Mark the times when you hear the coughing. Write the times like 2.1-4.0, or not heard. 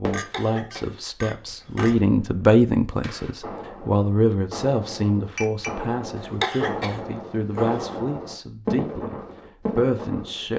0.1-1.9, 6.2-8.0.